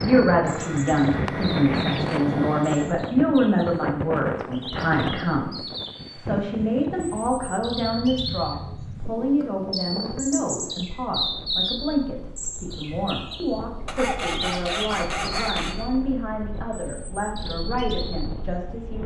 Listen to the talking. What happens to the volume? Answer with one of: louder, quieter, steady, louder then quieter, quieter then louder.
quieter.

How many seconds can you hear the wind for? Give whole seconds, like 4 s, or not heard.
19 s.